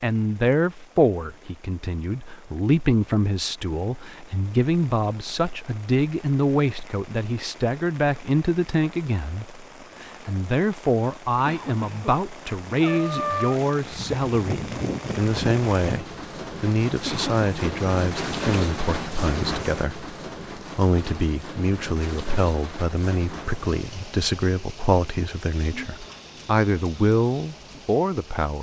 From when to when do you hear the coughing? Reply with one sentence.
You can hear the coughing from 11.4 to 12.2 s and from 17.1 to 17.8 s.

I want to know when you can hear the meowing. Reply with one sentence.
The meowing can be heard from 12.8 to 13.7 s.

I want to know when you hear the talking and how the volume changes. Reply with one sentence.
You can hear the talking from 0.0 to 28.5 s, at a steady volume.